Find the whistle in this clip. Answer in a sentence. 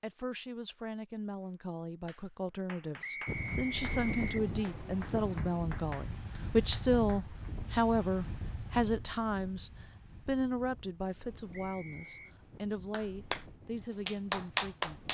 The whistle can be heard from 3.0 to 4.5 s and from 11.5 to 12.3 s.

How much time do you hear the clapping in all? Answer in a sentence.
You can hear the clapping for 7 seconds altogether.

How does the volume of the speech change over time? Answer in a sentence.
The loudness of the speech goes up, then down.